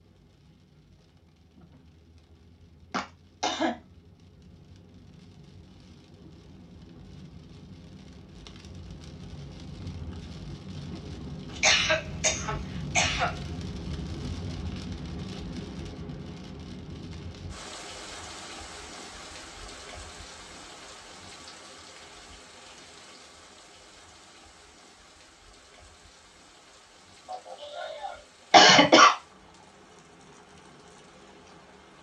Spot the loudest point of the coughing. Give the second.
29 s.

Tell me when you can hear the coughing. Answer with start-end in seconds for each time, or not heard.
2.9-3.8, 11.6-13.3, 27.3-29.1.